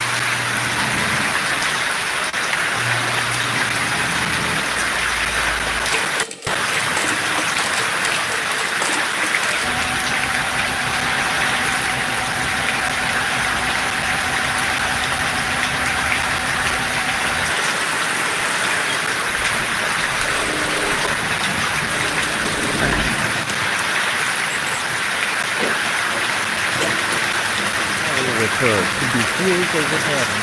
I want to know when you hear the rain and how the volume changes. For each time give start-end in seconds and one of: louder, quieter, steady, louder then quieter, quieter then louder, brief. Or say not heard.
0.0-30.3 steady.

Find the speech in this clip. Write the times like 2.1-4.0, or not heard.
27.9-30.3.